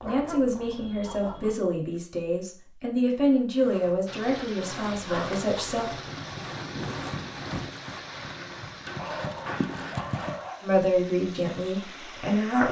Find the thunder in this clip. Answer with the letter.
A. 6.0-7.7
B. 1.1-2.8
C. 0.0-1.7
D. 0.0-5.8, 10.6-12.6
A.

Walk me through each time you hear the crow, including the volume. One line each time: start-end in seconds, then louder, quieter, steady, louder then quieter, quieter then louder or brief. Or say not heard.
not heard.